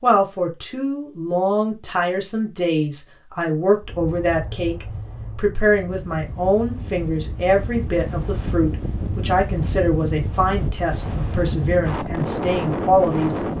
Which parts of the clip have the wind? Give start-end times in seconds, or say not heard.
3.8-13.5.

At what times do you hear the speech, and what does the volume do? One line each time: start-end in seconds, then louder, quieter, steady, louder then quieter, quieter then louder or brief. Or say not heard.
0.0-13.4 steady.